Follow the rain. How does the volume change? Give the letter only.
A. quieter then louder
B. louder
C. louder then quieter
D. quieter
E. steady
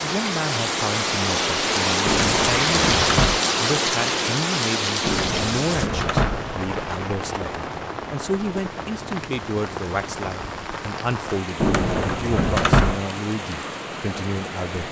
D.